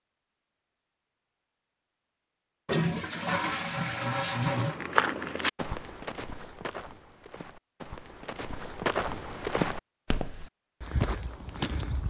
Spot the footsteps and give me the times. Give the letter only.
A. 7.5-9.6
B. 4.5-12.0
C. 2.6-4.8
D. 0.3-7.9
B.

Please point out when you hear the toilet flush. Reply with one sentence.
You can hear the toilet flush from 2.6 to 4.8 s.